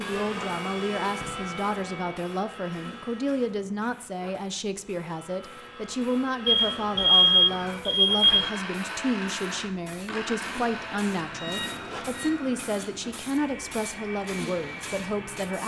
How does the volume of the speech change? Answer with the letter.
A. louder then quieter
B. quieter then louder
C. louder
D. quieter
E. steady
E.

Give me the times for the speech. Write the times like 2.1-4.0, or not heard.
0.0-15.6.